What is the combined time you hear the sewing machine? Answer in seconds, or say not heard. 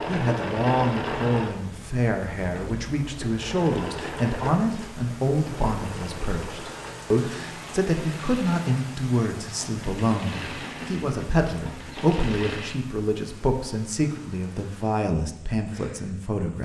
13 s.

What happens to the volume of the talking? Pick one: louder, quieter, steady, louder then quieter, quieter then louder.
steady.